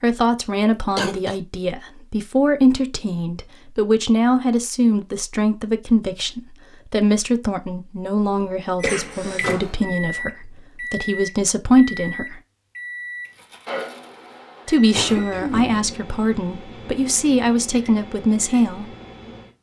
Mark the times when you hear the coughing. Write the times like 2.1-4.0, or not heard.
0.2-1.4, 8.8-9.6, 14.9-15.7.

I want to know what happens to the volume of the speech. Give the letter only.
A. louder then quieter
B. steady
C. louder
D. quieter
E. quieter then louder
B.